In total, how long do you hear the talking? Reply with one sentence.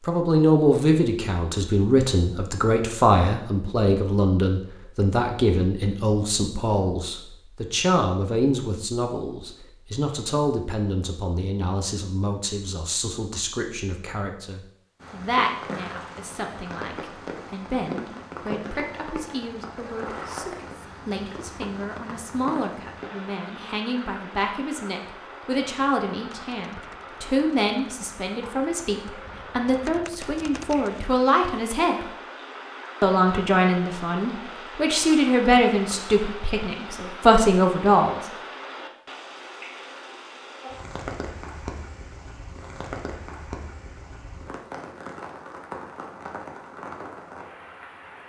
You can hear the talking for 37 seconds altogether.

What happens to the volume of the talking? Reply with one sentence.
The volume of the talking goes down, then up.